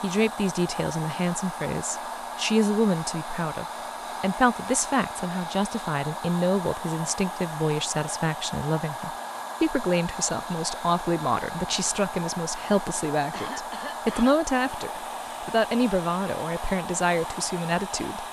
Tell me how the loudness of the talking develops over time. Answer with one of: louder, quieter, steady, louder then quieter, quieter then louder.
steady.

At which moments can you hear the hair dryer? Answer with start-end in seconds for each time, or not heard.
0.0-18.2.